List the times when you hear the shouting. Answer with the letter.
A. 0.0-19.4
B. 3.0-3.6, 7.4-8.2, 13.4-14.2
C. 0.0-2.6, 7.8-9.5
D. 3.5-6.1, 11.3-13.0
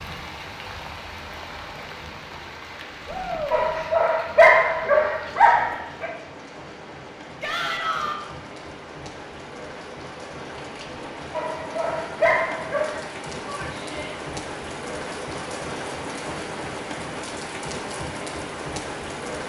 B.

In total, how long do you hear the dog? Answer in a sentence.
The dog can be heard for 4 seconds in total.